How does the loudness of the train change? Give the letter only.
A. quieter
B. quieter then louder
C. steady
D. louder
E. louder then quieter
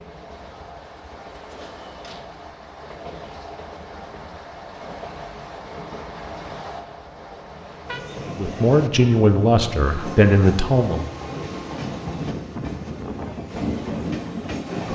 D.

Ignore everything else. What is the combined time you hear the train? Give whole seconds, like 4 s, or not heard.
15 s.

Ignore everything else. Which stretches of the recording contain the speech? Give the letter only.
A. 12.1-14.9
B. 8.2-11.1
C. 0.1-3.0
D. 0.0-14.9
B.